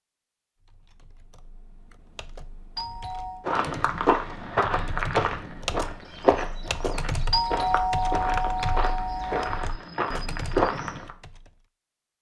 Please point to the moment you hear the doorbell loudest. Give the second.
8 s.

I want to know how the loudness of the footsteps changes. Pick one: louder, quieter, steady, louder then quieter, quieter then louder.
quieter then louder.